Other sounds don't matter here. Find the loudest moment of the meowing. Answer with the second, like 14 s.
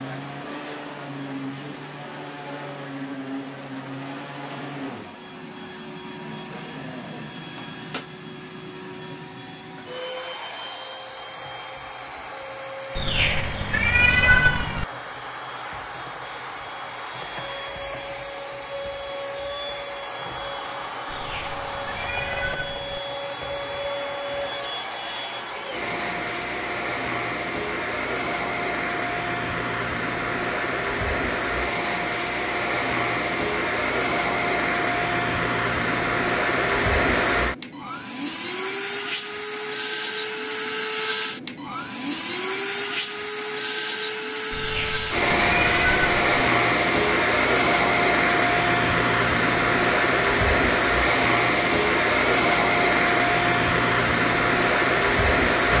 14 s.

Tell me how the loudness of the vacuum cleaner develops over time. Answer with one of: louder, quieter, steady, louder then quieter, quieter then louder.
louder.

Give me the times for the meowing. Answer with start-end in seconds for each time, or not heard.
12.9-14.8, 21.1-23.0, 44.5-46.2.